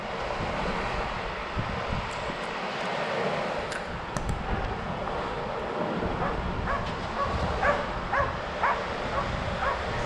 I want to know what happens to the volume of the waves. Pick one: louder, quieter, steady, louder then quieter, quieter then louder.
steady.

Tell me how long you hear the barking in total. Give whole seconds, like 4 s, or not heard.
4 s.